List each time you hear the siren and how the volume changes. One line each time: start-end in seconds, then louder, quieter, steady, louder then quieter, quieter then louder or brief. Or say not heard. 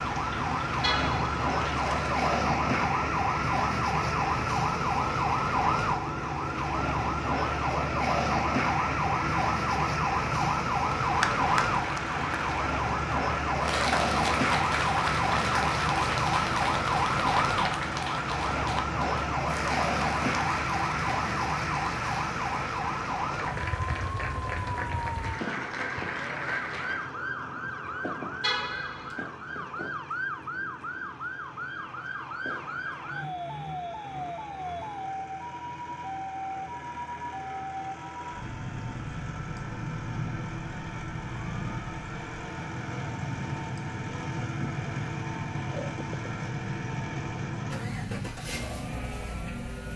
0.0-49.9 quieter.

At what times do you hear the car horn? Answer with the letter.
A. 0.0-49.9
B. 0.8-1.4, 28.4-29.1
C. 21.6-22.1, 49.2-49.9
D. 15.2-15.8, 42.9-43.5
B.